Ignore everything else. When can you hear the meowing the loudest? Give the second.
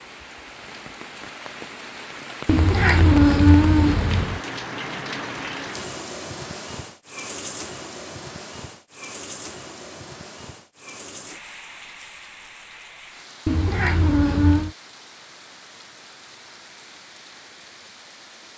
3 s.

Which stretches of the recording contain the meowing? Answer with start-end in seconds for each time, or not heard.
2.5-4.4, 13.4-14.7.